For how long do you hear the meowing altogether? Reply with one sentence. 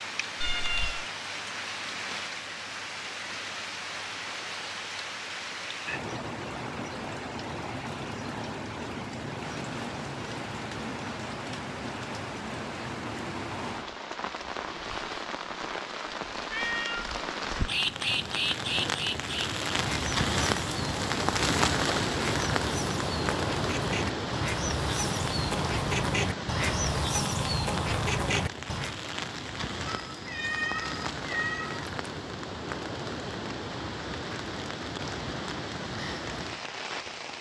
You can hear the meowing for 3 seconds altogether.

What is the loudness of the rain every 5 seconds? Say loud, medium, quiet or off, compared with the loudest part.
medium, medium, medium, medium, loud, medium, medium, medium.